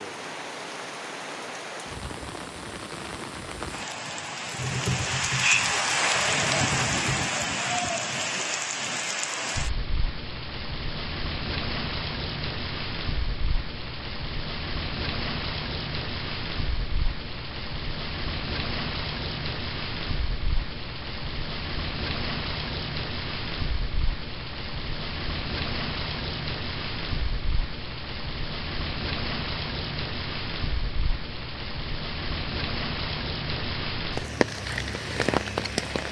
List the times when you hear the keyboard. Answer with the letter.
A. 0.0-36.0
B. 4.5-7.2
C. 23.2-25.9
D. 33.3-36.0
B.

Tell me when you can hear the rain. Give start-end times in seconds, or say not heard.
0.0-36.0.